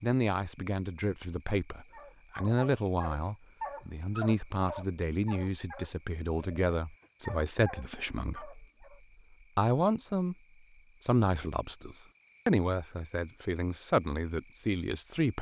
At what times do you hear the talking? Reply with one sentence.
The talking can be heard from 0.0 to 8.9 s, from 9.6 to 10.3 s and from 11.0 to 15.3 s.